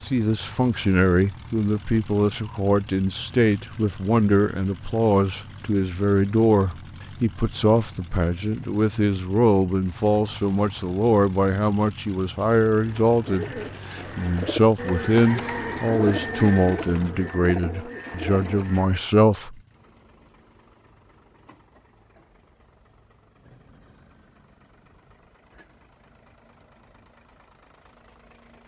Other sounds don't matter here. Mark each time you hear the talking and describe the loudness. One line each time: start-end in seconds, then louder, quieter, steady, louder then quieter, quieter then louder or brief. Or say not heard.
0.1-19.6 steady.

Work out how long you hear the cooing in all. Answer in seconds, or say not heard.
6 s.